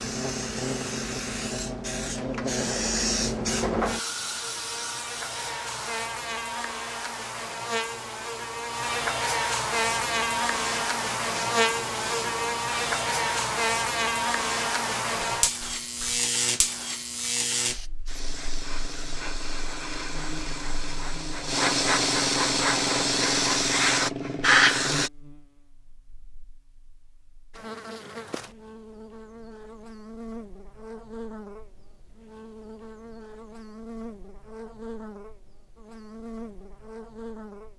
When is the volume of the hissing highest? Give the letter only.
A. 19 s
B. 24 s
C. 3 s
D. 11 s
B.